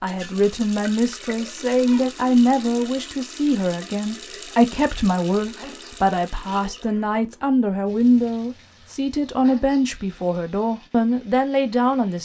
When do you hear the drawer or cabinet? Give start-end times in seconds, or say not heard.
not heard.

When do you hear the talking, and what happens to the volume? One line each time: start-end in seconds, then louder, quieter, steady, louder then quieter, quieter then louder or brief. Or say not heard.
0.0-12.1 steady.